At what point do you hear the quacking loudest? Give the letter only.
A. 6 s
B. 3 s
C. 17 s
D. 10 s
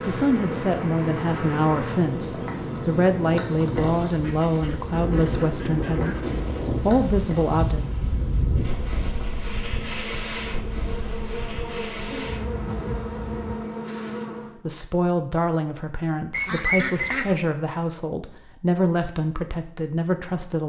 C.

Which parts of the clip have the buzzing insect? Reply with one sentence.
The buzzing insect can be heard from 0.0 to 14.6 s.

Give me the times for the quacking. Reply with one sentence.
The quacking can be heard from 4.2 to 6.2 s and from 16.3 to 17.4 s.